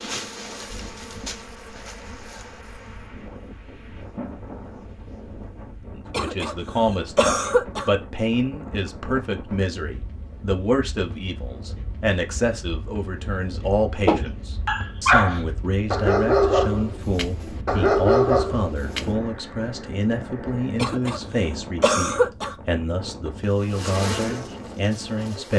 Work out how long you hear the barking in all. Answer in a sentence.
You can hear the barking for 5 seconds altogether.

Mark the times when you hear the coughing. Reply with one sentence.
You can hear the coughing from 6.1 to 6.5 s, from 7.2 to 7.9 s, from 20.8 to 21.2 s and from 21.8 to 22.6 s.